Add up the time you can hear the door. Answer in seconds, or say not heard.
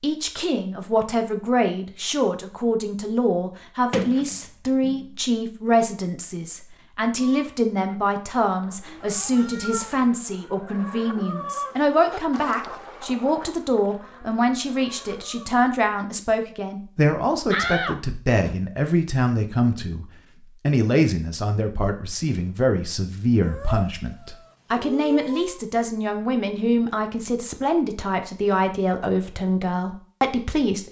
2 s.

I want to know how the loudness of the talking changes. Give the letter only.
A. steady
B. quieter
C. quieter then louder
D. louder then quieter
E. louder
A.